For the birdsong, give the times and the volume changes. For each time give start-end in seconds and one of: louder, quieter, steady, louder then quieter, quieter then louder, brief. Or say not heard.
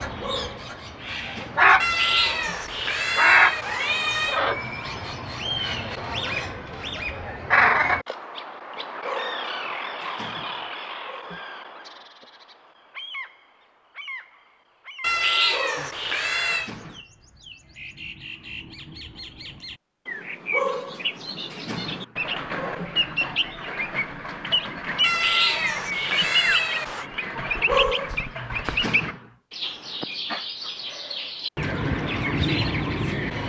0.0-33.4 quieter then louder.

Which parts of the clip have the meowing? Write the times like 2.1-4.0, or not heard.
1.8-4.4, 15.0-16.7, 25.0-27.1.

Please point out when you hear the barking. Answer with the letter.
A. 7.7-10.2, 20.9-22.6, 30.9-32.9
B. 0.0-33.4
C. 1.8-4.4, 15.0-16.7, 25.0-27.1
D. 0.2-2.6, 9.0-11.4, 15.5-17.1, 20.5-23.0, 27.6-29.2
D.